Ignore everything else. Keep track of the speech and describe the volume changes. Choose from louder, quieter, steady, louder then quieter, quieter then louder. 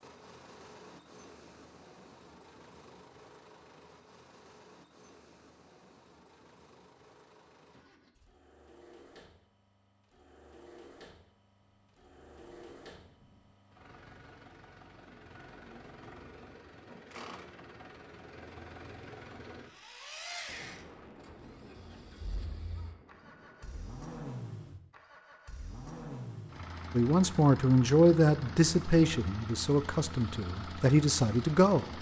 quieter then louder.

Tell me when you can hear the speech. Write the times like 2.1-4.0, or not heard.
26.9-31.9.